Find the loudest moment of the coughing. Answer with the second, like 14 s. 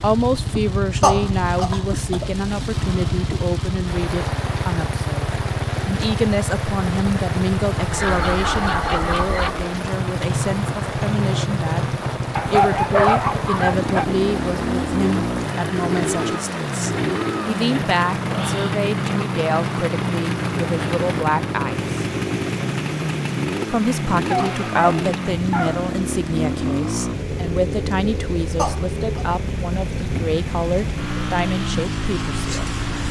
1 s.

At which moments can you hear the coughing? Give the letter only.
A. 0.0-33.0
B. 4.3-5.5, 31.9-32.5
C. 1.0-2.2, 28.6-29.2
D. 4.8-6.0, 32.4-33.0
C.